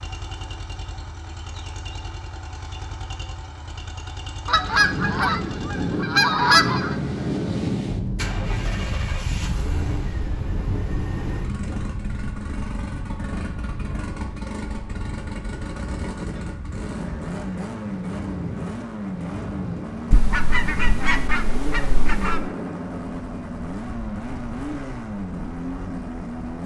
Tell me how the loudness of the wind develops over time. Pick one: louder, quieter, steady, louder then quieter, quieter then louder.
quieter.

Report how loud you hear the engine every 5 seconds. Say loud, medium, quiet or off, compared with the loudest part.
medium, loud, loud, loud, loud, loud.